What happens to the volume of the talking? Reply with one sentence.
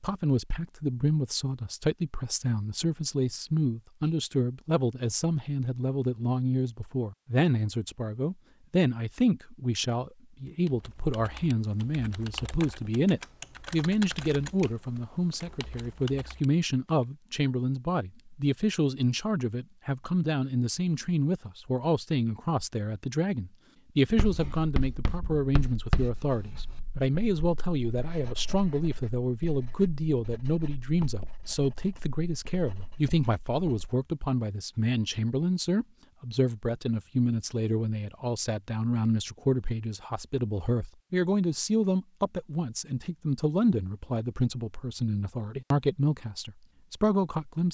The loudness of the talking stays about the same.